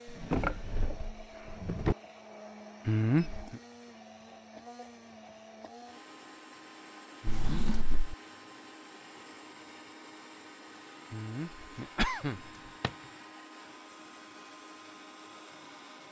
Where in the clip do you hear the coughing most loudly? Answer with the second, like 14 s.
3 s.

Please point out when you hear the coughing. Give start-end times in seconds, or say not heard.
2.9-3.6, 7.2-8.0, 11.1-12.5.